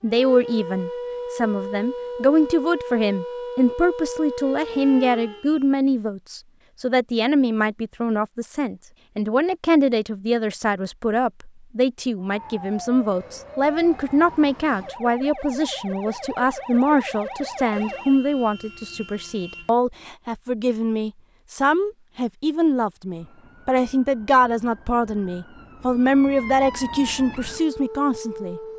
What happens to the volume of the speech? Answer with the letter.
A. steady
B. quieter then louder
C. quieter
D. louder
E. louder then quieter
A.